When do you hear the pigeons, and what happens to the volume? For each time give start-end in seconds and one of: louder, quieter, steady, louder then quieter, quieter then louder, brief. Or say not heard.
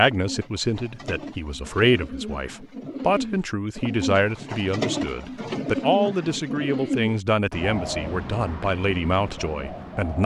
0.0-10.2 louder then quieter.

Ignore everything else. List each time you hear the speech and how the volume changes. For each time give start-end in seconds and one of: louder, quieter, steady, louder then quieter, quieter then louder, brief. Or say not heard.
0.0-10.2 steady.